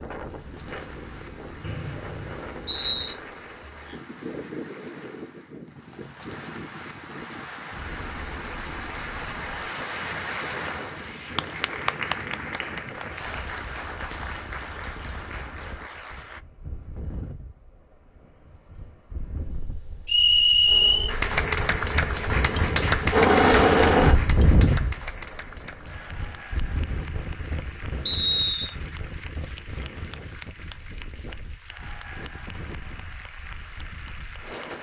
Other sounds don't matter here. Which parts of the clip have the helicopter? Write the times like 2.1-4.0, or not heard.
20.6-24.2.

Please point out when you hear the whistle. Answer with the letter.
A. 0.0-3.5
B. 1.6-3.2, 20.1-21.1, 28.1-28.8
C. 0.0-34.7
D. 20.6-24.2
B.